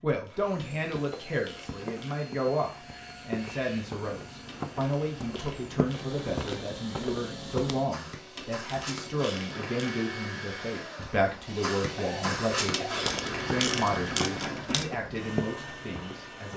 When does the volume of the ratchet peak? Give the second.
14 s.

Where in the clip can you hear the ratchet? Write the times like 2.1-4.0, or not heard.
0.6-2.1, 4.5-6.7, 8.3-9.9, 12.7-14.9.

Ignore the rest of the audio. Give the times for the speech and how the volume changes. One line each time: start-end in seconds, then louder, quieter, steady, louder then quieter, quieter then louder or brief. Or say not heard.
0.0-16.5 steady.